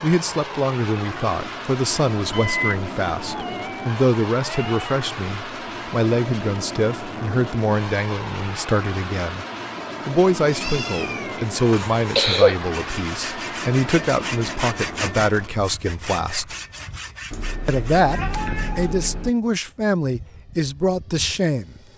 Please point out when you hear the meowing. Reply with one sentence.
You can hear the meowing from 2.3 to 5.0 s, from 10.4 to 12.0 s and from 17.3 to 19.3 s.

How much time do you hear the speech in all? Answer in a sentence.
You can hear the speech for 20 seconds altogether.